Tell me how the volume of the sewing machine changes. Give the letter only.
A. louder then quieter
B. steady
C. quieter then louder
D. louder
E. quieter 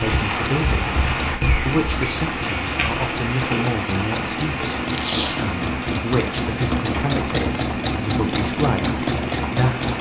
D.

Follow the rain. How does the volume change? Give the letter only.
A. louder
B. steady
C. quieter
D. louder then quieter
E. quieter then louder
C.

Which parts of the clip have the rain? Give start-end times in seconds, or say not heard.
0.0-9.9.